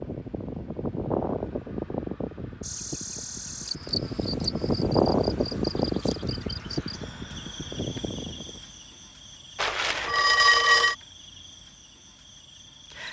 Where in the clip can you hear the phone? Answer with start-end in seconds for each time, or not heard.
9.6-10.9.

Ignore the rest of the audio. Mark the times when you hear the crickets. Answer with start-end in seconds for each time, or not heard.
2.6-13.0.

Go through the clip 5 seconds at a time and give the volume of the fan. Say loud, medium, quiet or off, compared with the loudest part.
loud, loud, off.